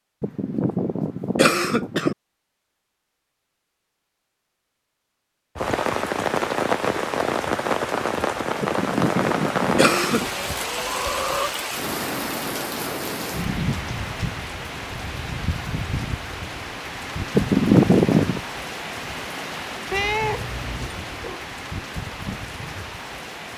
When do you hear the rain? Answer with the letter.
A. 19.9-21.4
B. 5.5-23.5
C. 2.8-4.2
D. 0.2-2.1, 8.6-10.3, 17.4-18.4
B.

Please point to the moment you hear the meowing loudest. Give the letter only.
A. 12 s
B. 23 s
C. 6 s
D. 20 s
D.